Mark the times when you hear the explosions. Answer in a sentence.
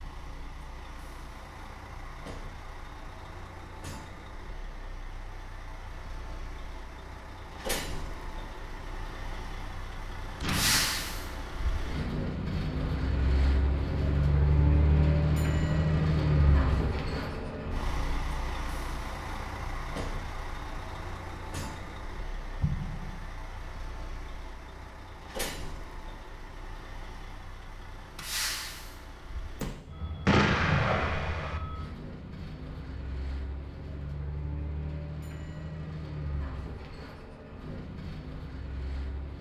You can hear the explosions from 10.4 to 11.4 s, from 22.6 to 23.2 s and from 30.2 to 31.6 s.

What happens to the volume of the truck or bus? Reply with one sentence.
The volume of the truck or bus goes up, then down.